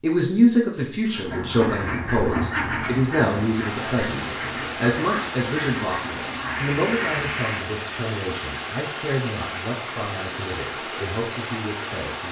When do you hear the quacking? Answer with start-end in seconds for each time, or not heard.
1.1-7.3.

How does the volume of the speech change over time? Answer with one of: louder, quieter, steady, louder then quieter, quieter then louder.
quieter.